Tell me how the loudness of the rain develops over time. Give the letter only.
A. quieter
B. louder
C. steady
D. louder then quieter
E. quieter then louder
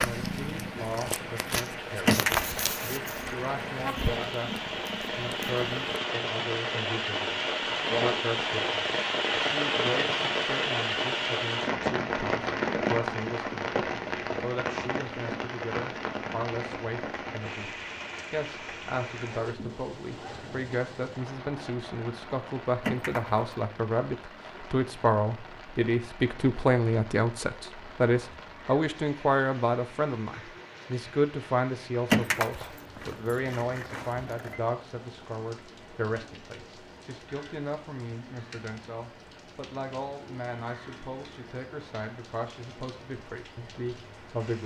A.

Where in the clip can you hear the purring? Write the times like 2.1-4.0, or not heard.
0.0-6.0.